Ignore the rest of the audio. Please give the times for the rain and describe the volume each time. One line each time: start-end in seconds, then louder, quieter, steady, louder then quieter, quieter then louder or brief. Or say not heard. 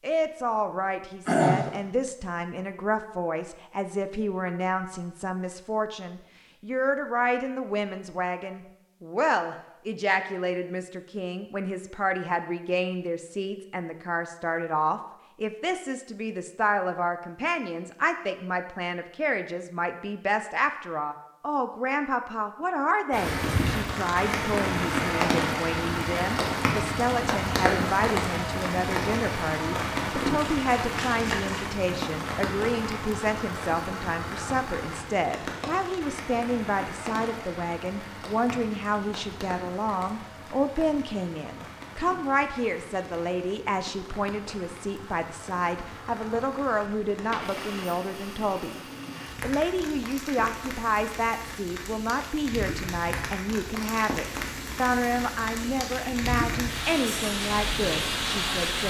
23.1-58.8 quieter then louder.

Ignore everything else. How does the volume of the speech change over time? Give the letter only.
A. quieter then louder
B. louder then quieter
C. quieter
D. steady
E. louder
D.